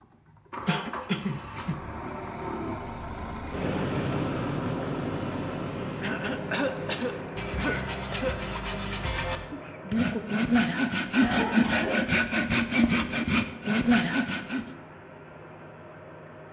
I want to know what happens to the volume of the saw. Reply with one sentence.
The volume of the saw goes up.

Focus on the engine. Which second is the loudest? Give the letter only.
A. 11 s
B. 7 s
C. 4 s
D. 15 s
C.